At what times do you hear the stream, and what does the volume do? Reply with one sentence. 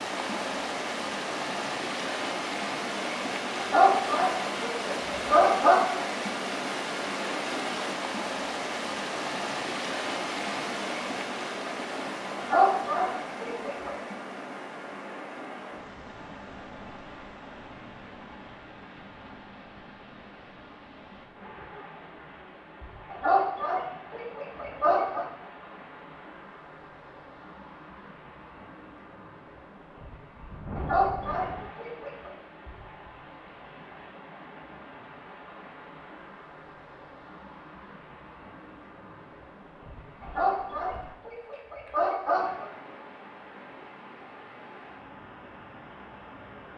The stream can be heard from 0.0 to 46.7 s, getting quieter.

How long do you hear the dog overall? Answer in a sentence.
The dog can be heard for 10 seconds in total.